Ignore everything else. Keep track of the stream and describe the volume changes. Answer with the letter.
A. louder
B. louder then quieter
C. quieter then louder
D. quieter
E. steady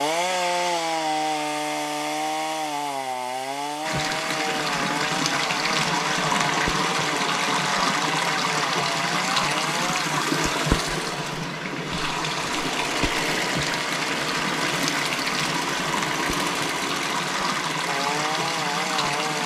E.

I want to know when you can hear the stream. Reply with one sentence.
The stream can be heard from 3.8 to 19.4 s.